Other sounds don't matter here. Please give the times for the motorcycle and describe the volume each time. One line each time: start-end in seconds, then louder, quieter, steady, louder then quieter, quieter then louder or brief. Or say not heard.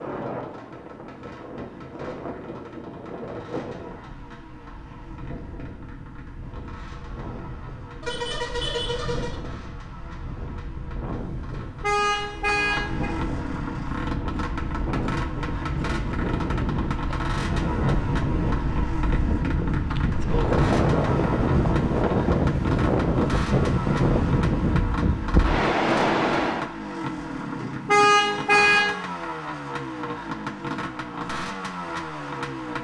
0.0-32.7 louder.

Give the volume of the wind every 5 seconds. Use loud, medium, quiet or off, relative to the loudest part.
quiet, quiet, quiet, medium, loud, loud, off.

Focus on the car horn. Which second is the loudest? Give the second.
28 s.